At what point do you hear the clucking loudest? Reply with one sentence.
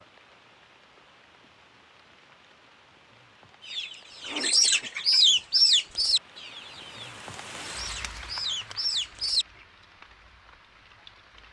The volume of the clucking peaks at 5 seconds.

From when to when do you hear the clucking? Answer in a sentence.
The clucking can be heard from 3.6 to 9.4 s.